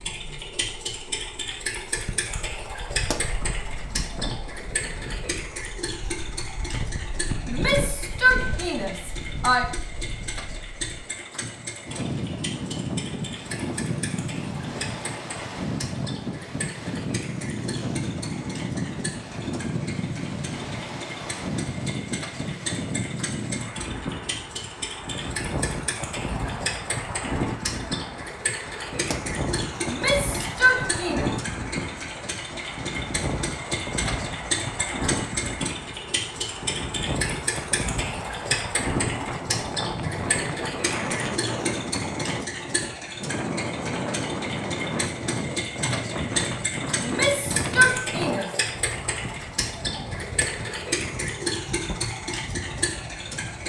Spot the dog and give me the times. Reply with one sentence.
You can't hear the dog here.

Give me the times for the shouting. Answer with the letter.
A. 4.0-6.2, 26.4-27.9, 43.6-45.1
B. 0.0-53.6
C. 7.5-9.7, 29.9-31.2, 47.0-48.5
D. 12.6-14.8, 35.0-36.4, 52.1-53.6
C.